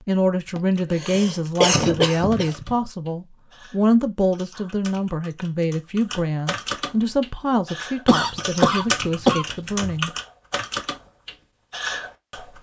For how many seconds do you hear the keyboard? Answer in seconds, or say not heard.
12 s.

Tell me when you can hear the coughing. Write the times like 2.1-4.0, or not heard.
0.6-2.8, 8.1-9.9.